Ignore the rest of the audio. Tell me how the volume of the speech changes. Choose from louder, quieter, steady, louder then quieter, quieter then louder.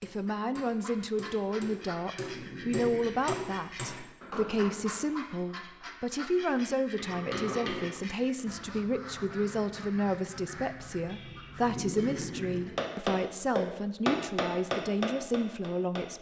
steady.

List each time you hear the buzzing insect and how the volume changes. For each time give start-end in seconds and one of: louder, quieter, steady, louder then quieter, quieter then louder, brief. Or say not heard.
not heard.